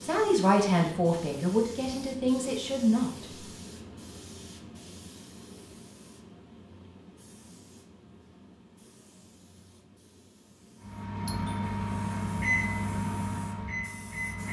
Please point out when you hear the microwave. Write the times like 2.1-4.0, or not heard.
10.8-14.4.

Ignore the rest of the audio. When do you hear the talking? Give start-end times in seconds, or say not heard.
0.0-3.5.